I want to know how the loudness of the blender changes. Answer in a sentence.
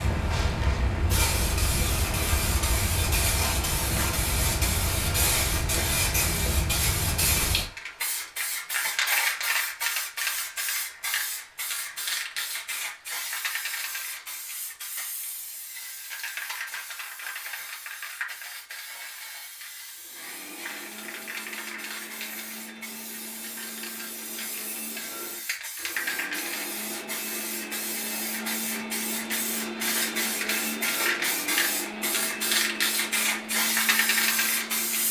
The volume of the blender goes up.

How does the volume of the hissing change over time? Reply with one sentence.
The loudness of the hissing goes down, then up.